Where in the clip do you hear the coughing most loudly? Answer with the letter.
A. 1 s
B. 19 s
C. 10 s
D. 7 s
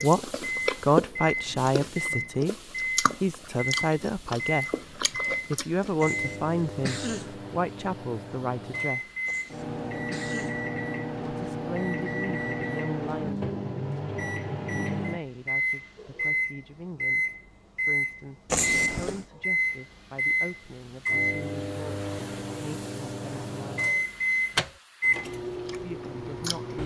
B.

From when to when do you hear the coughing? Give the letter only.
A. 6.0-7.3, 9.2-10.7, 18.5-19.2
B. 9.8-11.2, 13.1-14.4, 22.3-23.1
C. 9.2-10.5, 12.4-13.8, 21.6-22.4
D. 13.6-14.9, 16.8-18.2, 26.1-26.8
A.